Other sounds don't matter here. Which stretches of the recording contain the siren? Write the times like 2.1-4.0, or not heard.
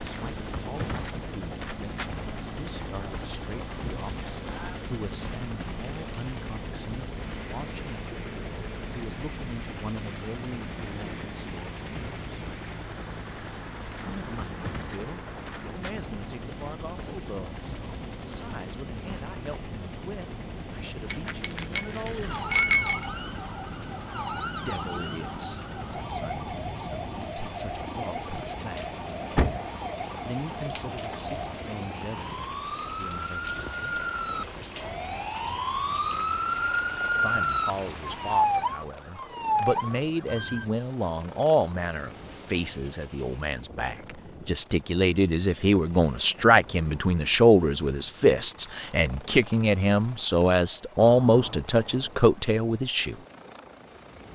22.1-40.6.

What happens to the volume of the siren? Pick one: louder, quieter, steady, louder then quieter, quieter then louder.
louder.